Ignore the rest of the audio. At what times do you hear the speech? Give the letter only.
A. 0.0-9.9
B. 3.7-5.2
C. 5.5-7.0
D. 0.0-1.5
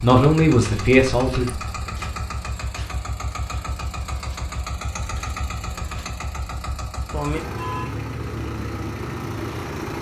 D.